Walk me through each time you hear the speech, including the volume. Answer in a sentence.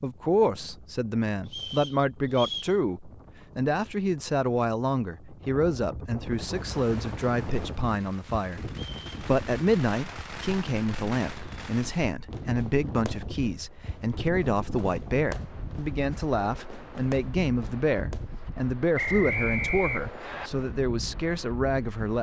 You can hear the speech from 0.0 to 22.1 s, at a steady volume.